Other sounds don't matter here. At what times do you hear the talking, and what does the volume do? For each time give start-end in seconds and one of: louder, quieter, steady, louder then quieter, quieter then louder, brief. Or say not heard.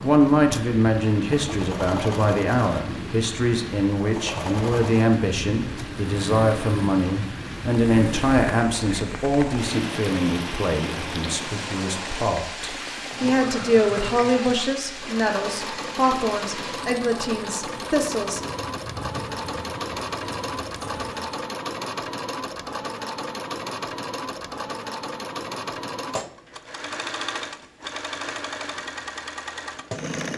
0.0-18.4 steady.